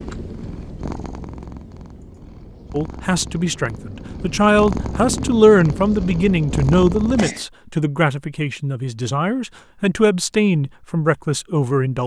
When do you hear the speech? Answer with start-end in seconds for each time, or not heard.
2.7-12.0.